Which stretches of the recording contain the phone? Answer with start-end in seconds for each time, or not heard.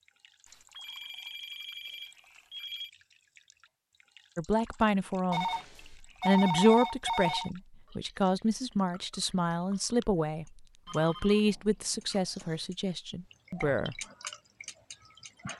0.5-2.9, 5.3-7.5, 10.8-12.6.